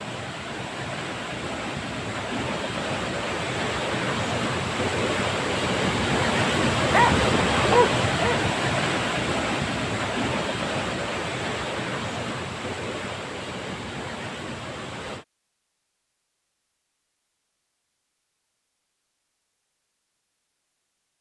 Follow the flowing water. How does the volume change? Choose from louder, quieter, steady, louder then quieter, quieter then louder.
louder then quieter.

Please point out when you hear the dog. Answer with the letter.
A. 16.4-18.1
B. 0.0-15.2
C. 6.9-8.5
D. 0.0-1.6
C.